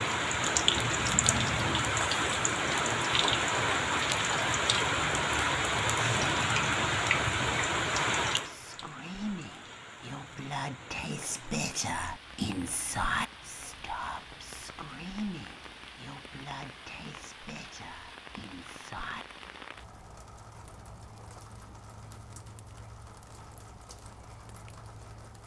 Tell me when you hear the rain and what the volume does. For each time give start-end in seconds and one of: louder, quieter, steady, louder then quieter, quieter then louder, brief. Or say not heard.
0.0-25.4 quieter.